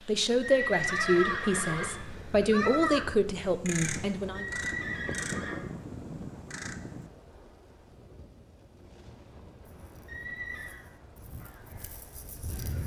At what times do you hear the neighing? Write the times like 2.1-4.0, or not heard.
0.4-2.0, 4.3-5.6, 10.1-10.8.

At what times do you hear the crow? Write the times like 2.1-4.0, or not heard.
0.0-7.1, 9.7-12.8.